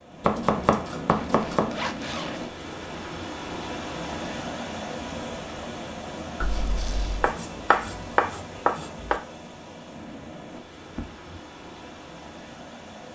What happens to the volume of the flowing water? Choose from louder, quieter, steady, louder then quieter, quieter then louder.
quieter.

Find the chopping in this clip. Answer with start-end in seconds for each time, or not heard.
0.2-1.8, 7.2-9.2.